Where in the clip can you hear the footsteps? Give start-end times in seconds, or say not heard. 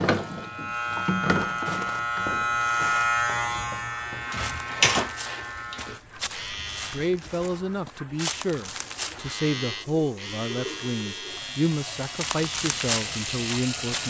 1.6-9.2, 12.2-14.0.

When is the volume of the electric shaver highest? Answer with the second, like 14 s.
3 s.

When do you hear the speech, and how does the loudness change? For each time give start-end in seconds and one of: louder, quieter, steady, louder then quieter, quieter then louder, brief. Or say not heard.
6.9-14.0 steady.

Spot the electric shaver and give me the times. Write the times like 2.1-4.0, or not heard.
0.1-7.1, 9.2-14.0.